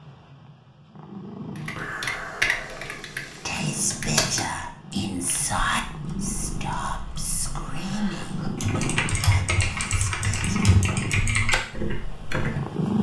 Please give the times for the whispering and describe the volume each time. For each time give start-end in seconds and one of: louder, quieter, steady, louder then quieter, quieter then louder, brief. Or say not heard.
3.5-10.8 quieter.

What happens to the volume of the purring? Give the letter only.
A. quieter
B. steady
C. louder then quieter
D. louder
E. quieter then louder
D.